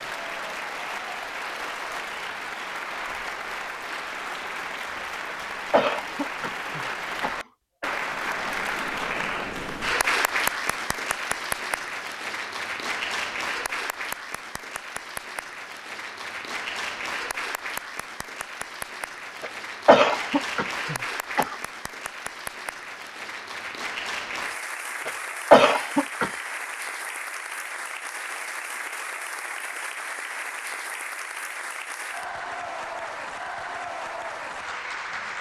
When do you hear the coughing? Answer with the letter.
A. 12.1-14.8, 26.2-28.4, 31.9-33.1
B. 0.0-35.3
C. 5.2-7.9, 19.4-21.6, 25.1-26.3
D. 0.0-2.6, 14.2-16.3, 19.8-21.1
C.